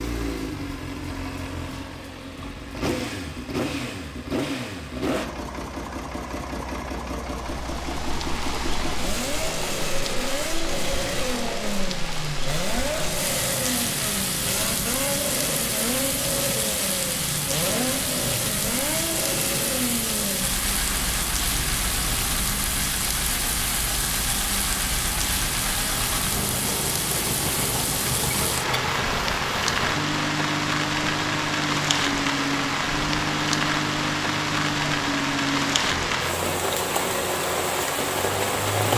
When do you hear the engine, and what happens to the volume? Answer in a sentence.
You can hear the engine from 0.0 to 38.9 s, at a steady volume.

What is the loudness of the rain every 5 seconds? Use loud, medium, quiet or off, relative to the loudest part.
off, medium, medium, loud, loud, loud, loud, loud.